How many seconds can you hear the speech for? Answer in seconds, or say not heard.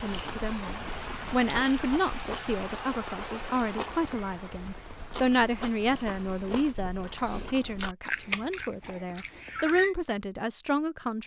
11 s.